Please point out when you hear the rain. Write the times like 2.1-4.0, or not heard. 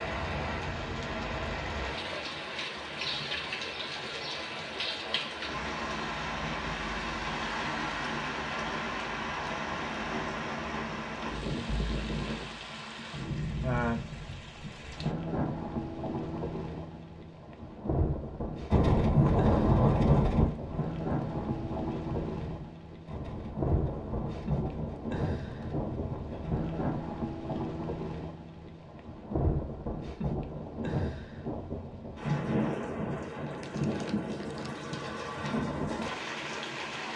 0.0-37.1.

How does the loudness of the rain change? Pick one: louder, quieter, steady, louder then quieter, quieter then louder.
steady.